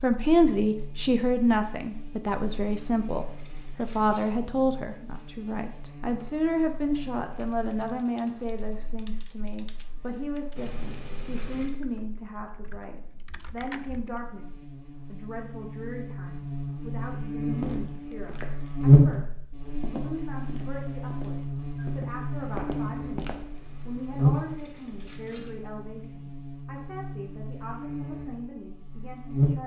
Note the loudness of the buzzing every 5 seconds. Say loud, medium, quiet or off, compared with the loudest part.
quiet, quiet, quiet, loud, medium, medium.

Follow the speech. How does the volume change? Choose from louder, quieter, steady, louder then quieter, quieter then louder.
quieter.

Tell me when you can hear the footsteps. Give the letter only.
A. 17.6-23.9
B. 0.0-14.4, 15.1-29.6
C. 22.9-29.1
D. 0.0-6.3
A.